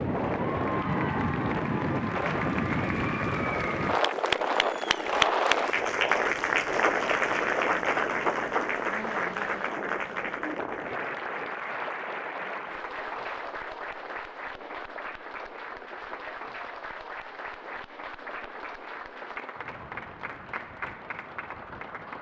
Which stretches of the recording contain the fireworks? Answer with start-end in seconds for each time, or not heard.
not heard.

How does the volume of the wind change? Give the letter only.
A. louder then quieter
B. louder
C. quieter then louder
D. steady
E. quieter
E.